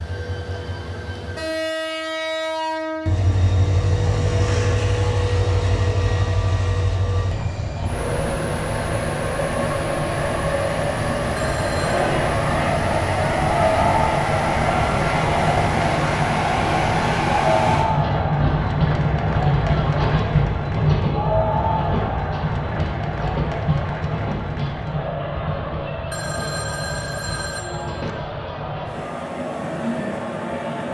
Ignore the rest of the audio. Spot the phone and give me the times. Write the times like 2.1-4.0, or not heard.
11.3-12.1, 26.1-28.1.